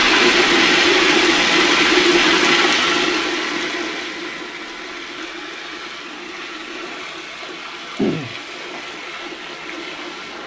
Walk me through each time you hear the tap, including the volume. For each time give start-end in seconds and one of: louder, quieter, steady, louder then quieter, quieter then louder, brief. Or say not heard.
0.0-10.4 quieter.